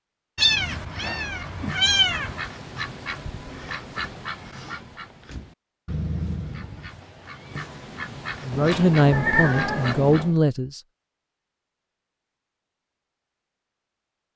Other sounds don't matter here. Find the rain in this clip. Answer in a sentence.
You can't hear the rain here.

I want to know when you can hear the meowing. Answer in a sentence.
The meowing can be heard from 0.3 to 2.5 s and from 8.5 to 10.3 s.